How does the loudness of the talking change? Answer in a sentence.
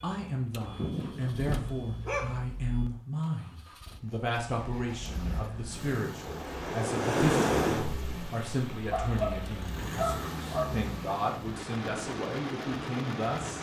The loudness of the talking stays about the same.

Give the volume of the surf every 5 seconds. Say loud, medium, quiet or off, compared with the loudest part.
off, loud, medium.